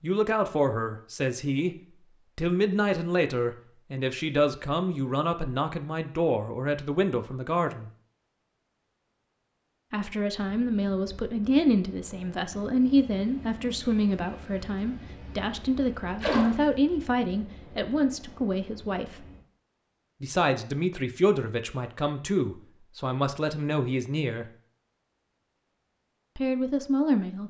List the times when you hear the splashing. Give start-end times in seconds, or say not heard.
16.2-16.6.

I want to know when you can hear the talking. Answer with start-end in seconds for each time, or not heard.
0.0-7.9, 9.9-19.3, 20.2-24.4, 26.4-27.4.